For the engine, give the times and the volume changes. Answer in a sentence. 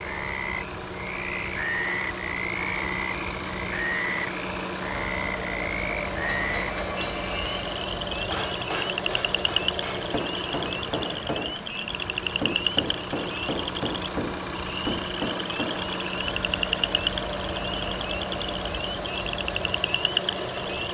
The engine can be heard from 0.0 to 20.8 s, at a steady volume.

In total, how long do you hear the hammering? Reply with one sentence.
You can hear the hammering for 10 seconds altogether.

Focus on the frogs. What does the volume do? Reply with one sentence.
The volume of the frogs stays about the same.